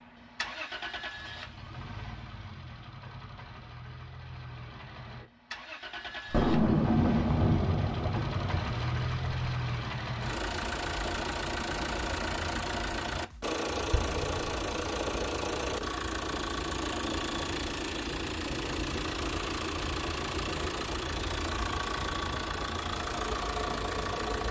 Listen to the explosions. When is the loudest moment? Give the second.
7 s.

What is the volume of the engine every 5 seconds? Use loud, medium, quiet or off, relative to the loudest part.
medium, loud, loud, loud, loud.